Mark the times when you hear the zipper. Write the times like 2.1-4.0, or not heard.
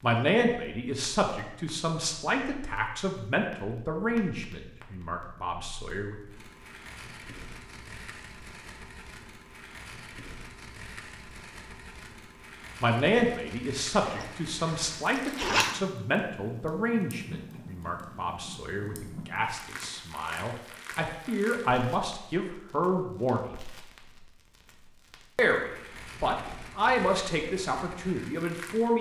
14.1-15.8.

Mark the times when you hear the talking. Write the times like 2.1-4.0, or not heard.
0.0-6.2, 12.8-23.5, 25.4-28.9.